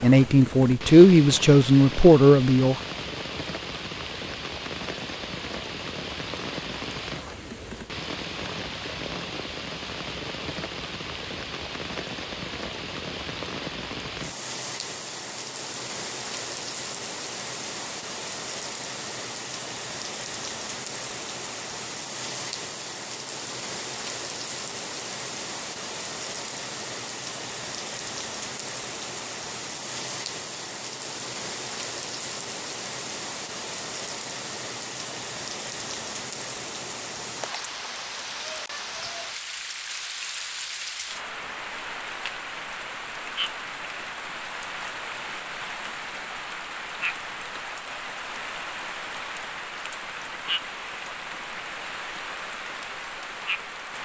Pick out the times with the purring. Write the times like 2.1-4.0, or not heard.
not heard.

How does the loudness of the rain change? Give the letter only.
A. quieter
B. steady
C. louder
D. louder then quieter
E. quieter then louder
B.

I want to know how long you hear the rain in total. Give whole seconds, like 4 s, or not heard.
54 s.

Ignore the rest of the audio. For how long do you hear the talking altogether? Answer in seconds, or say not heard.
3 s.